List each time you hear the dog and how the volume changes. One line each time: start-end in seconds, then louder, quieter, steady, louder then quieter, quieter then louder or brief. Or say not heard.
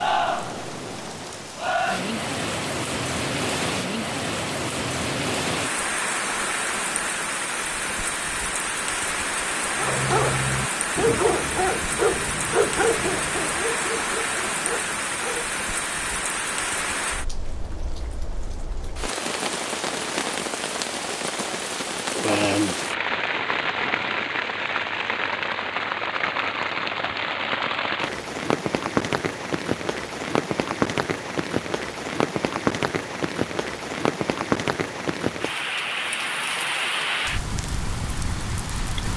9.8-15.5 quieter.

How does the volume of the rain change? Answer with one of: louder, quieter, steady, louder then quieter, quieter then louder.
steady.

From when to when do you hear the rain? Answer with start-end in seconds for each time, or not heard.
0.0-39.1.